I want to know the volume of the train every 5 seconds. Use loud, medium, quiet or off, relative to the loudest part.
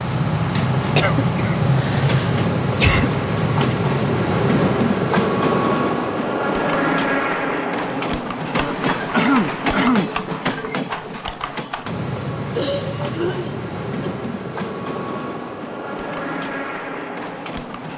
loud, loud, medium, medium.